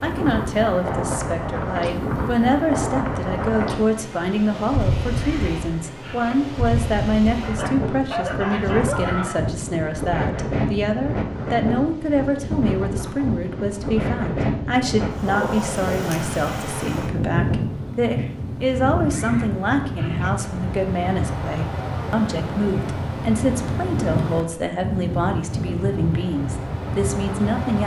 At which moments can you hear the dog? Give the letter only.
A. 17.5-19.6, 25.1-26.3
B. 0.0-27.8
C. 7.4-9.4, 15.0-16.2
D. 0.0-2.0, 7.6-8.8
C.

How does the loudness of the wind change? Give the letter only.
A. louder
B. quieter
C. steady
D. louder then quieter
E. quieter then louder
C.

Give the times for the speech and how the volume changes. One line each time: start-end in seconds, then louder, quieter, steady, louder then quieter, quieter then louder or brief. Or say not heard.
0.0-27.8 steady.